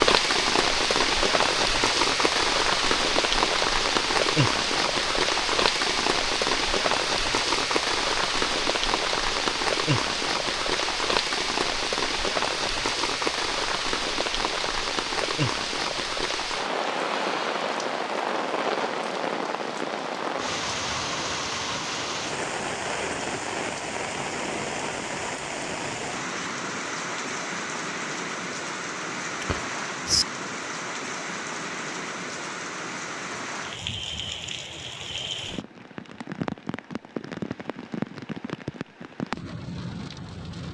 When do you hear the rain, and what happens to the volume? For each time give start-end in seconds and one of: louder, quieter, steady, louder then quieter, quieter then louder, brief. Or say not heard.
0.0-40.6 quieter.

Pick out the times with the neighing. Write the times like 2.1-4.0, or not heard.
29.2-30.2.